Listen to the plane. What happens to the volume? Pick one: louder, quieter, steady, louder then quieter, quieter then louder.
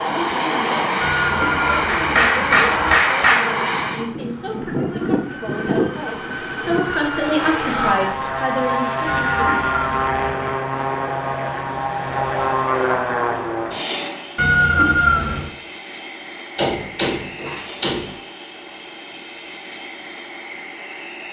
quieter.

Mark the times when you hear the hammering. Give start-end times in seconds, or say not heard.
1.9-3.5, 16.6-18.1.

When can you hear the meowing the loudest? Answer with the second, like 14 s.
15 s.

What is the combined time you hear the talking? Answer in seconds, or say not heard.
10 s.